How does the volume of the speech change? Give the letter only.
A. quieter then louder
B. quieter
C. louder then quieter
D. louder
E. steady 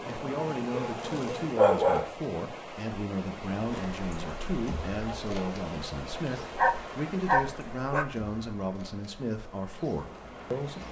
E.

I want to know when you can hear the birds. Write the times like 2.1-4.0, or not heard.
not heard.